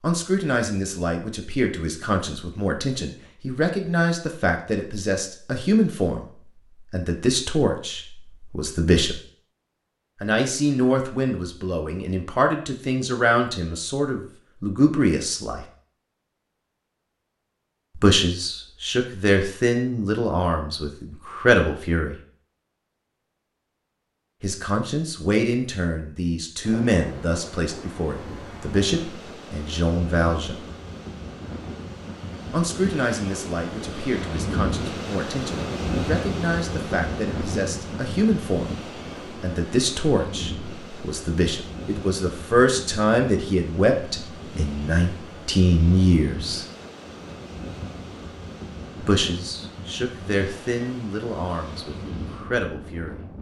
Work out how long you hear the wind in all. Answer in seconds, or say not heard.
27 s.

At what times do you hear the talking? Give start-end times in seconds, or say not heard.
0.0-9.2, 10.2-15.7, 17.9-22.2, 24.4-30.6, 32.5-46.6, 49.0-53.2.